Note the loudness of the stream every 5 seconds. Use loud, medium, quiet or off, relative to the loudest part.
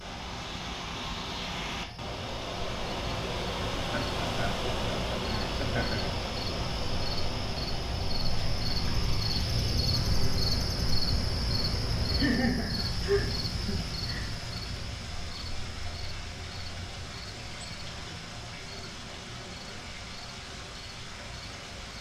loud, loud, medium, medium, medium.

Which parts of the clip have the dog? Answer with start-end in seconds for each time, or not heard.
not heard.